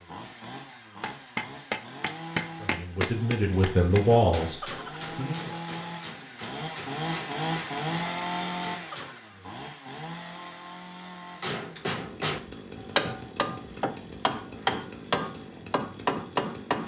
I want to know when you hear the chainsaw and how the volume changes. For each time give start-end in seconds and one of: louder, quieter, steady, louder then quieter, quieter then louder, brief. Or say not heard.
0.0-16.8 louder then quieter.